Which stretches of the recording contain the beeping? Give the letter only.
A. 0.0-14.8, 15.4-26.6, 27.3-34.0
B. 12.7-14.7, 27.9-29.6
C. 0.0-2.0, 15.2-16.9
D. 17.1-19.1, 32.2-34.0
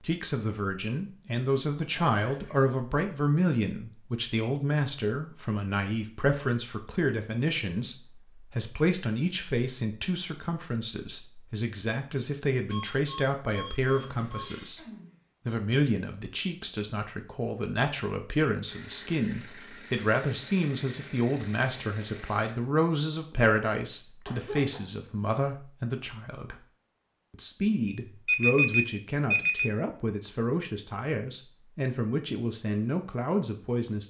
B.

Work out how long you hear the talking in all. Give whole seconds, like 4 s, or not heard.
33 s.